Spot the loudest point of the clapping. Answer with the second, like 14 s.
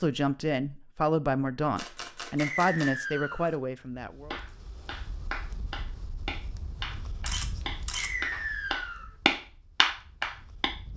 9 s.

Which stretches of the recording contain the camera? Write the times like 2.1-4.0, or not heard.
1.8-3.5, 7.2-8.1.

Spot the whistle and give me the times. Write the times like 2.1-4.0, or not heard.
2.4-3.5, 8.0-9.1.